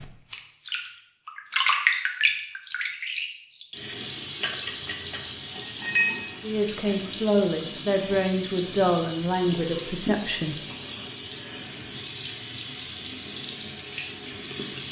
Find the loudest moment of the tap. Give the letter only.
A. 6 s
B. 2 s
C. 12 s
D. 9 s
B.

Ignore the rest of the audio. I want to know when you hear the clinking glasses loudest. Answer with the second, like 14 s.
6 s.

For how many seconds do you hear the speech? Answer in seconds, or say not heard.
4 s.